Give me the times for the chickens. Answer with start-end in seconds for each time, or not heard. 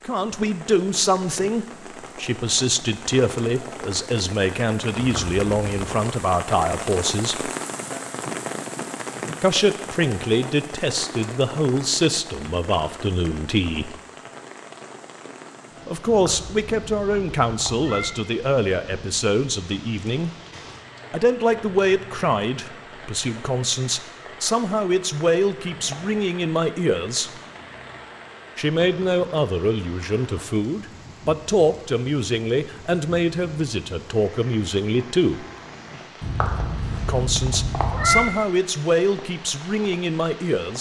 not heard.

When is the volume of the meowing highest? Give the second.
38 s.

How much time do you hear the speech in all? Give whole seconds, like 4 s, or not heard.
33 s.